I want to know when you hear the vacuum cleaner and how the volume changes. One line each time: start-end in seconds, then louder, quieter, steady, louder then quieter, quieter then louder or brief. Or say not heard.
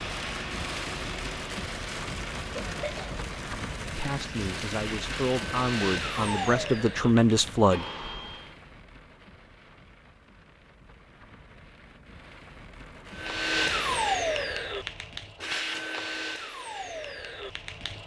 0.0-8.6 louder then quieter
13.1-18.0 quieter.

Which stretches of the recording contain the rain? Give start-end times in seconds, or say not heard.
0.0-14.2.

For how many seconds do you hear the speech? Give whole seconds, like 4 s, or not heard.
4 s.